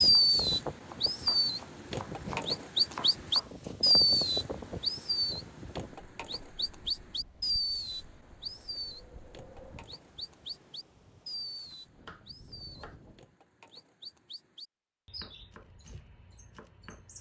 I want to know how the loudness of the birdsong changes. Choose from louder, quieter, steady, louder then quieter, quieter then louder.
quieter.